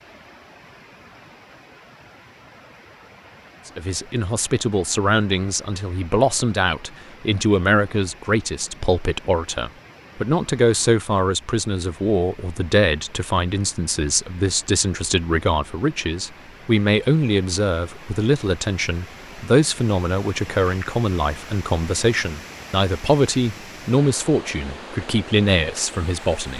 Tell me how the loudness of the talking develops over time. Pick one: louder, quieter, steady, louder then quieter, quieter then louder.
steady.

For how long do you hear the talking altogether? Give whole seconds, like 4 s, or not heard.
23 s.